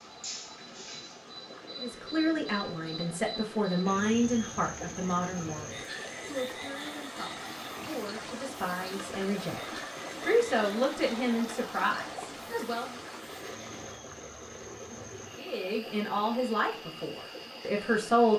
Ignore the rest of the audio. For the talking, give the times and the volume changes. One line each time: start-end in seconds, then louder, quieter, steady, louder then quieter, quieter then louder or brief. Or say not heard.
1.8-12.9 quieter then louder
15.3-18.3 brief.